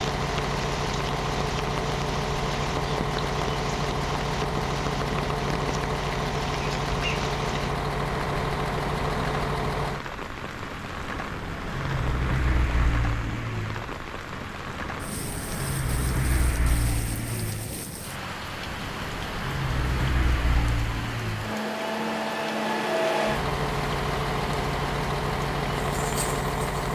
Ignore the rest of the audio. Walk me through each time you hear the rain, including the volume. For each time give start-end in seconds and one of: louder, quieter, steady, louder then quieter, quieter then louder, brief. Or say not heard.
0.0-26.9 steady.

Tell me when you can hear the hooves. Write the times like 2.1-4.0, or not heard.
not heard.